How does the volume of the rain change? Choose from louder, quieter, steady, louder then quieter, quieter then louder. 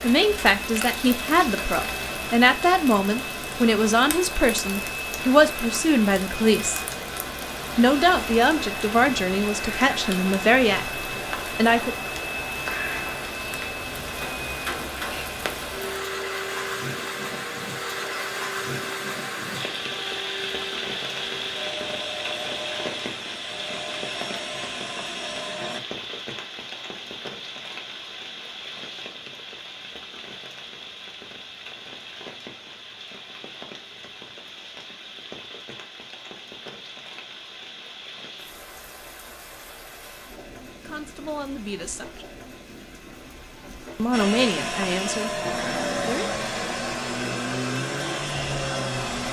quieter.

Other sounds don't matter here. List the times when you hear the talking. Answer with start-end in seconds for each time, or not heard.
0.0-6.8, 7.8-11.9, 40.9-42.2, 44.0-46.3.